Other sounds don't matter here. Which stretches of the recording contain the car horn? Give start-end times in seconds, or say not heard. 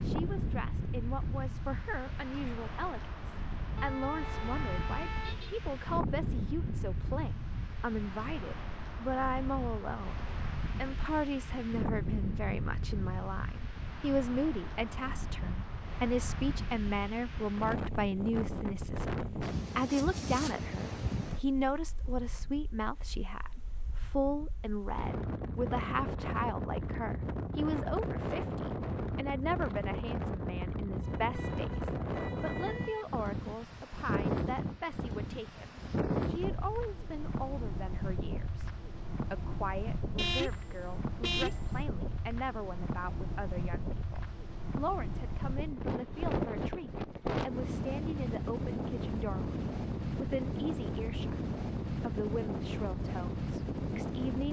3.8-5.6, 31.0-33.0, 40.1-41.8.